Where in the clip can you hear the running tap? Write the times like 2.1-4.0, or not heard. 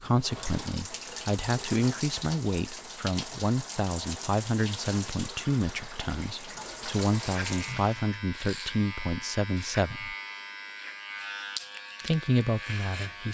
0.0-8.1.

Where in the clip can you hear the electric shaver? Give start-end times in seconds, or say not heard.
7.0-13.2.